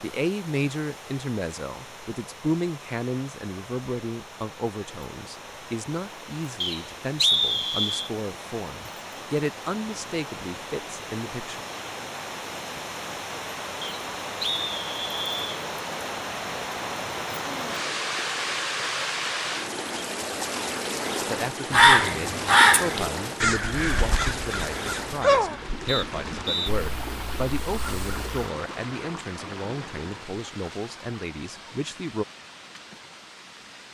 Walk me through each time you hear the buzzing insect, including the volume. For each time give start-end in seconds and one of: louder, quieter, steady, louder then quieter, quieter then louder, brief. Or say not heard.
not heard.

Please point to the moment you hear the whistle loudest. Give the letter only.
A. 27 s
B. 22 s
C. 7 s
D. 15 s
C.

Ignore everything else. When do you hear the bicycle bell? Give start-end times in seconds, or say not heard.
not heard.